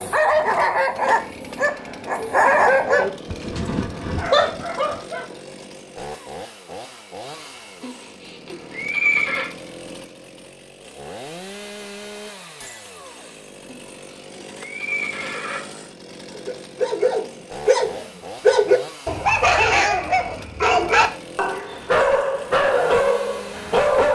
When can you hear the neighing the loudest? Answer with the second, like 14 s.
9 s.